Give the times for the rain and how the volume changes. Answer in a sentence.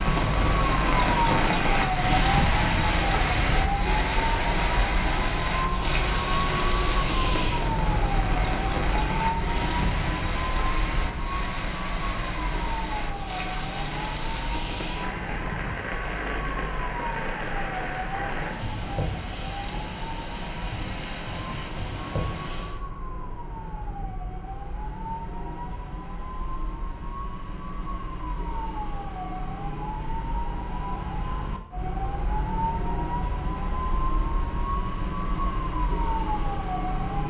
You can hear the rain from 0.0 to 22.8 s, getting quieter.